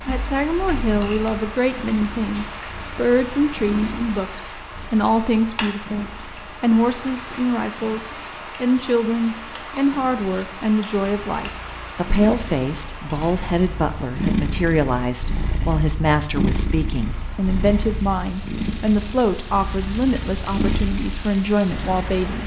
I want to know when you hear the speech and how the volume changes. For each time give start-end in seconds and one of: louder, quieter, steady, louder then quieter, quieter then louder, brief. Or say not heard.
0.1-22.4 steady.